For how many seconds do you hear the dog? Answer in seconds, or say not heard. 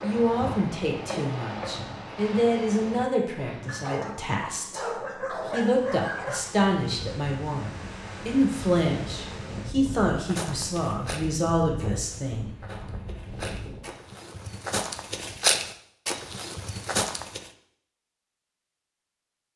3 s.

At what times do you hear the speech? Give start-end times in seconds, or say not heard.
0.0-12.5.